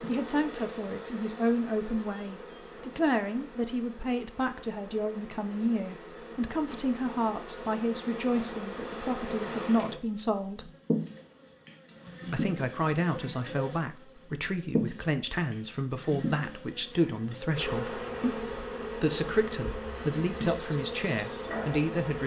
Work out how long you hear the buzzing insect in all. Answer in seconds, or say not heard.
22 s.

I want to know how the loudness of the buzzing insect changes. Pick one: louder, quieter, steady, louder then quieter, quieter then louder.
louder.